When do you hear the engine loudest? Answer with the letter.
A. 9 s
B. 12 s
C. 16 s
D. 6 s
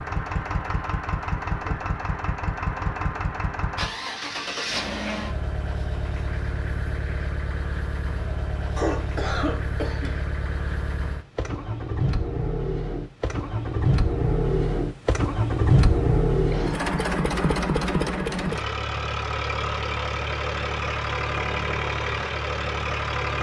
C.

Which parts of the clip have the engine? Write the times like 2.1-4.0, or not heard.
0.0-23.3.